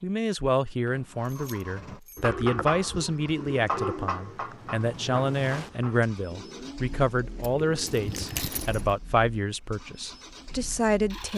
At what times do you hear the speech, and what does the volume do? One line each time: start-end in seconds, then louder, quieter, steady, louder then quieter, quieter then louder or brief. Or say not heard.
0.0-11.3 steady.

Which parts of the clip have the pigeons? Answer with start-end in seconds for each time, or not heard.
2.1-8.3.